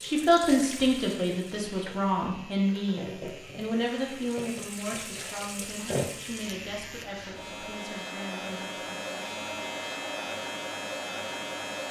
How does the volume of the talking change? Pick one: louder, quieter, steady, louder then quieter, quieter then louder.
quieter.